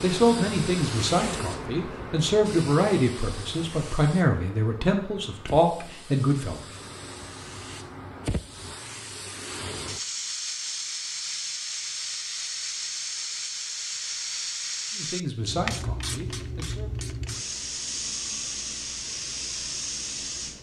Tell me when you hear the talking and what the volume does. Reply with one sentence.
You can hear the talking from 0.0 to 6.7 s, at a steady volume; and briefly from 14.9 to 17.1 s.